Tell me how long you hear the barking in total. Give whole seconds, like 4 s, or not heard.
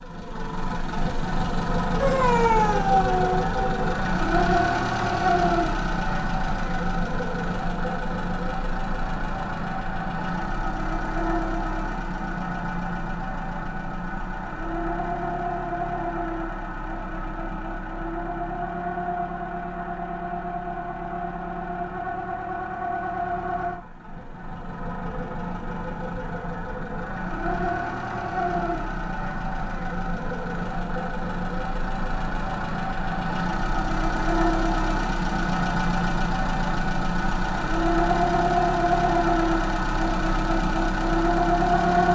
2 s.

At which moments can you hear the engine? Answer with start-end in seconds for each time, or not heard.
0.0-42.1.